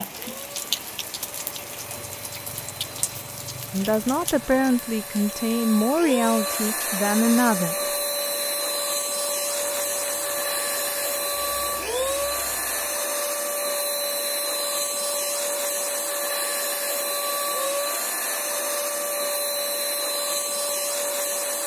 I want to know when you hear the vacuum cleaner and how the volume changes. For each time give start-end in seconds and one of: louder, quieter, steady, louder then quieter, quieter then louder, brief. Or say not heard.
0.1-21.6 louder.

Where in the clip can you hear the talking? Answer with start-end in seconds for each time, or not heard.
3.7-7.8.